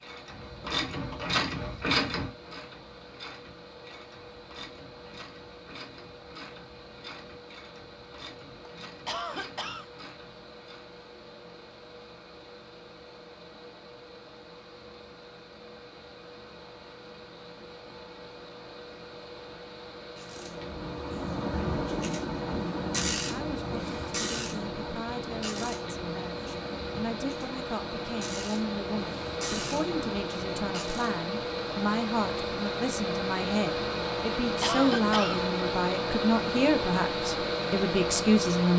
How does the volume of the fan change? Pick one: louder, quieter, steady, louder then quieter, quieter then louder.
louder.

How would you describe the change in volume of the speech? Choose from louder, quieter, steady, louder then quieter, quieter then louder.
louder.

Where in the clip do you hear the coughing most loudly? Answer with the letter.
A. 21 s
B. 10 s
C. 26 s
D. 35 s
D.